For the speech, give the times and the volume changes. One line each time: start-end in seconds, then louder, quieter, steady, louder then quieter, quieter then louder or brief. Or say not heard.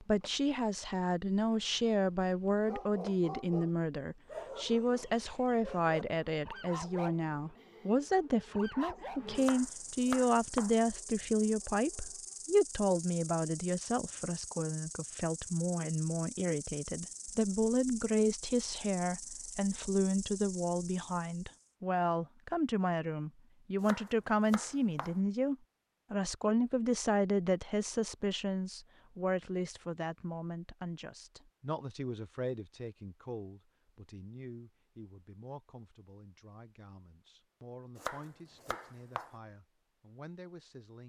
0.0-41.0 quieter.